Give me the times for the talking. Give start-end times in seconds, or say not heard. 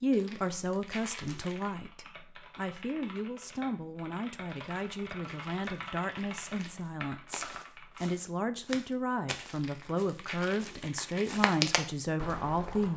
0.0-12.9.